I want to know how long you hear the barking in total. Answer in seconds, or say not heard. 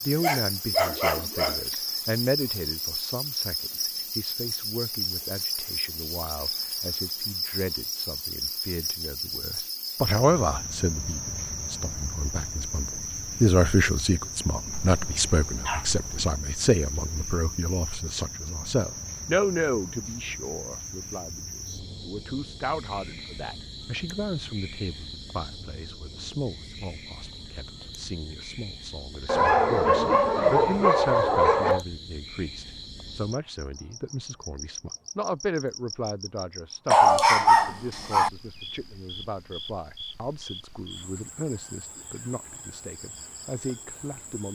7 s.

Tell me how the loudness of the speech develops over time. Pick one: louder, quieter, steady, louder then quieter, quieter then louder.
louder then quieter.